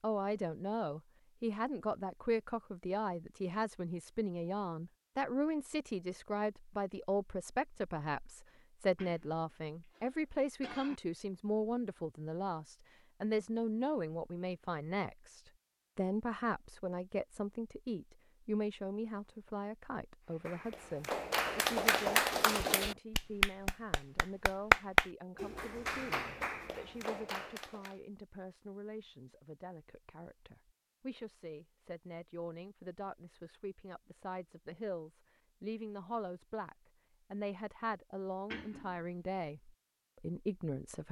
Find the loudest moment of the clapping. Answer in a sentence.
The loudest moment of the clapping is at 25 seconds.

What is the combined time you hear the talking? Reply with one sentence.
The talking can be heard for 41 seconds in total.